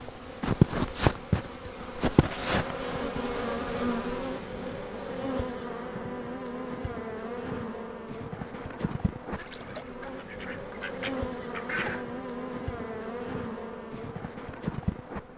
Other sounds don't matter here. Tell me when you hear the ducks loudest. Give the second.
12 s.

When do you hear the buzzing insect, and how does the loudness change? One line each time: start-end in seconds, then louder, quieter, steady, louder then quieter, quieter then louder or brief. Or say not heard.
0.0-15.3 quieter.